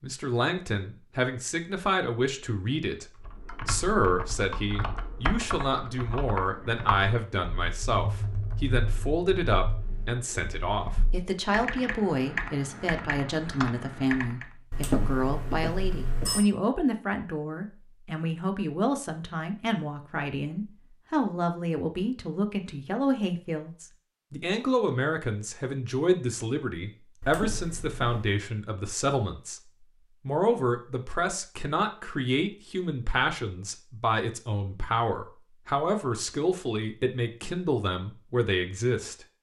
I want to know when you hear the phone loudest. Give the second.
15 s.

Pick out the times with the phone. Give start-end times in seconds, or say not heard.
14.7-16.4, 27.2-28.3.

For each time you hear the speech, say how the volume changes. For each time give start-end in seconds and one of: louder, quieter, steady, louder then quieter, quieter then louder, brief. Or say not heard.
0.0-29.6 steady
30.2-39.2 steady.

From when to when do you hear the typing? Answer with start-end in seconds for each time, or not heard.
3.1-14.5.